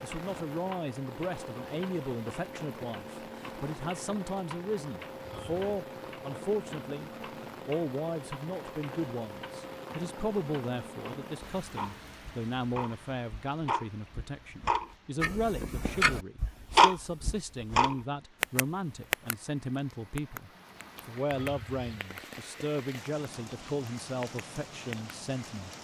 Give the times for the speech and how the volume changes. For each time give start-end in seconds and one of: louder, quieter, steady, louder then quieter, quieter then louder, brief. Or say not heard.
0.0-25.7 steady.